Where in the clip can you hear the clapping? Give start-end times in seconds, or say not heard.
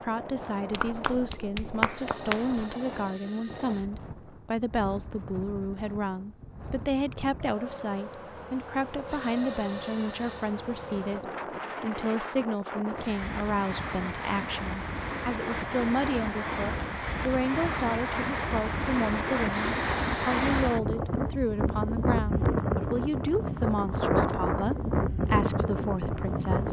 0.7-2.6.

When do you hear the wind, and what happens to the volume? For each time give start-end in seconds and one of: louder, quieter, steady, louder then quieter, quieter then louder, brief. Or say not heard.
0.0-26.6 louder.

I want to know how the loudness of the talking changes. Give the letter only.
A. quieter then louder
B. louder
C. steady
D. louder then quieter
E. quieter
C.